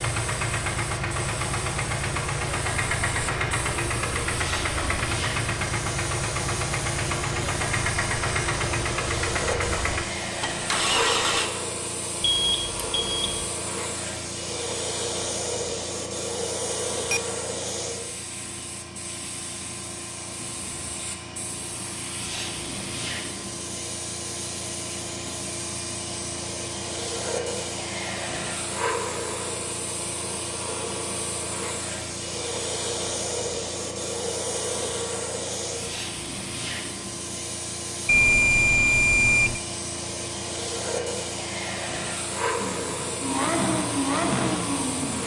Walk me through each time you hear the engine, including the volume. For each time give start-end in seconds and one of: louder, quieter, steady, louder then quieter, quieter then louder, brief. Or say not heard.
0.0-11.5 steady
42.5-45.2 brief.